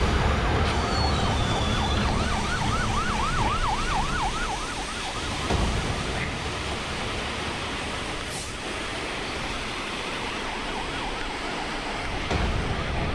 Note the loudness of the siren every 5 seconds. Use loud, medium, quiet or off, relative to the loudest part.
loud, medium, medium.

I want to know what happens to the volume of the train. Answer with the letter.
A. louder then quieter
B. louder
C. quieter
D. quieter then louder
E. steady
E.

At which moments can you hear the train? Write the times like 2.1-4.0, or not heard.
0.0-13.1.